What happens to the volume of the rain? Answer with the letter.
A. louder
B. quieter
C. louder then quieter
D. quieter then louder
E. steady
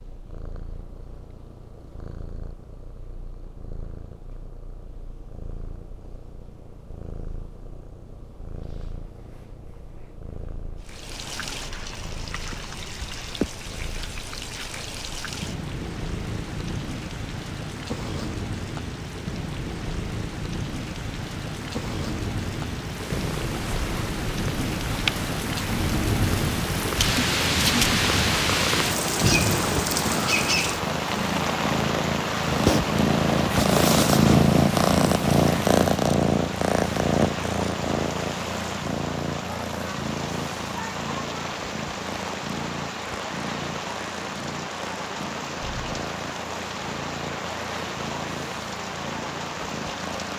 C.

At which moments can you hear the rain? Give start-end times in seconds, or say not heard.
10.8-50.3.